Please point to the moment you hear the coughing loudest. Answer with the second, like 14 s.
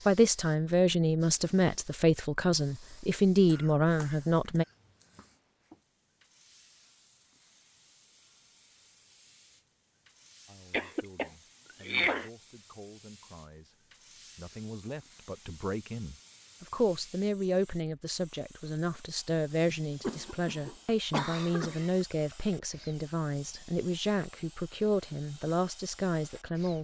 12 s.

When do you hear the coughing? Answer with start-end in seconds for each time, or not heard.
3.5-5.0, 10.7-12.3, 20.0-22.1.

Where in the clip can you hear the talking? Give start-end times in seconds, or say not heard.
0.1-4.7, 10.4-26.8.